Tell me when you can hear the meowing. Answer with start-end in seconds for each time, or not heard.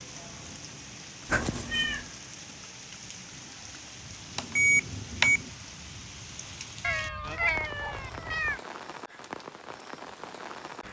1.2-2.1, 6.8-8.6.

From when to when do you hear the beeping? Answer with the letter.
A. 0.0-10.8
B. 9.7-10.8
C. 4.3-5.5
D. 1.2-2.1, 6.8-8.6
C.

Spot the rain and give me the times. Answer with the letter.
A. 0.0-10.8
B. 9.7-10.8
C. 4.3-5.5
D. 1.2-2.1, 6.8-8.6
A.